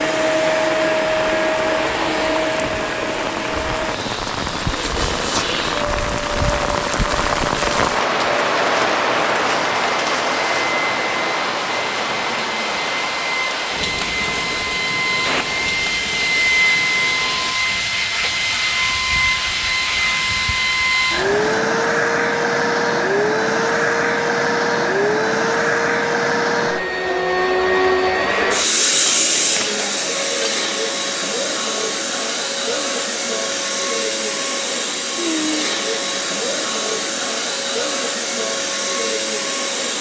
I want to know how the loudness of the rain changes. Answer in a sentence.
The volume of the rain goes up, then down.